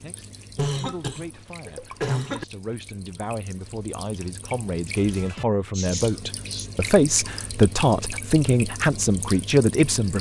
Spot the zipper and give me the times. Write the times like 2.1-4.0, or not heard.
not heard.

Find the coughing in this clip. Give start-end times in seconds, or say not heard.
0.6-2.5, 5.8-6.7.